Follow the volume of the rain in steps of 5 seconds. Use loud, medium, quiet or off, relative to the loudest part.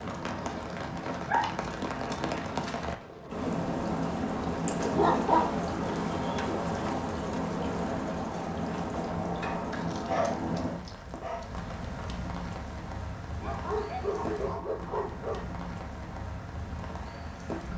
loud, loud, medium, medium.